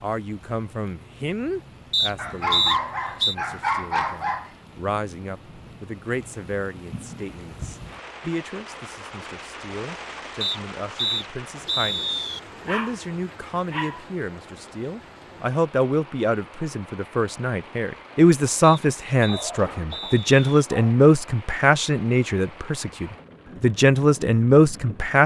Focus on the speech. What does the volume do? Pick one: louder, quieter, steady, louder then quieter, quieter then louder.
louder.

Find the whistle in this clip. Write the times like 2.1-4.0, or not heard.
1.9-3.4, 10.4-12.4, 18.6-20.6.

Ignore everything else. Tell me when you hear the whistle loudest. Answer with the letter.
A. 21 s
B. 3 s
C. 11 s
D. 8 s
B.